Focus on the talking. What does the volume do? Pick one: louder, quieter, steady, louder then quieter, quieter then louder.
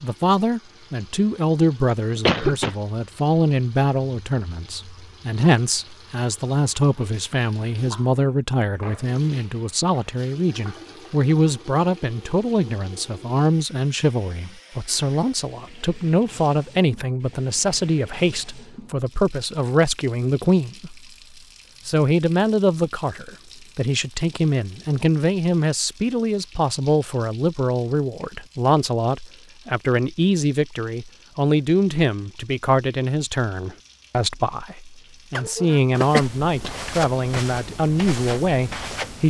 steady.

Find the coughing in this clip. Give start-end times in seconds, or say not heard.
2.1-2.8, 35.4-36.2.